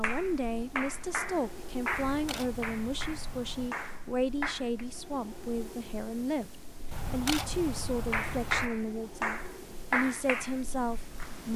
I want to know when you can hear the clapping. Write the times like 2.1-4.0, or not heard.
0.0-4.8, 8.1-11.5.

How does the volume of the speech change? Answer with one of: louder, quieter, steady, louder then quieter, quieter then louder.
steady.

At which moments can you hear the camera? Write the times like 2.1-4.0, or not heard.
1.9-3.7, 6.9-8.7.